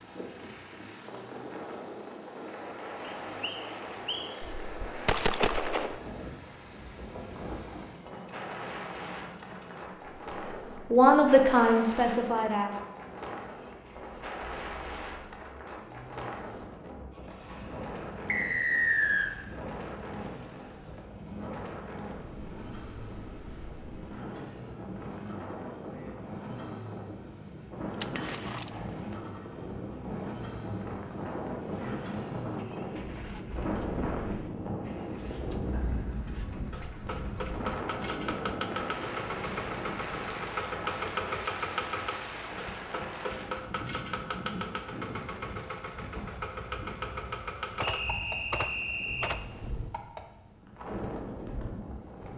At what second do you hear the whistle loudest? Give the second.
19 s.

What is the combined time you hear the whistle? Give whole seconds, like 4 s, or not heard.
4 s.